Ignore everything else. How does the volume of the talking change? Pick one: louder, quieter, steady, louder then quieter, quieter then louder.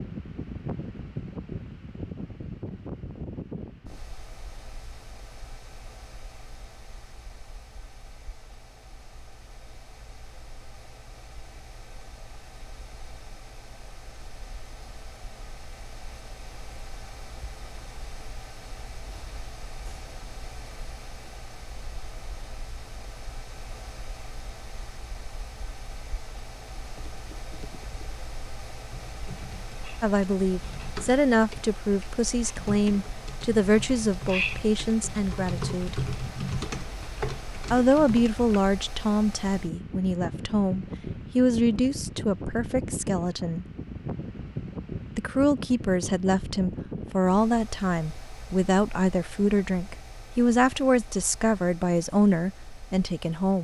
steady.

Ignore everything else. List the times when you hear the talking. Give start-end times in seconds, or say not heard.
30.0-36.0, 37.7-43.6, 45.1-53.5.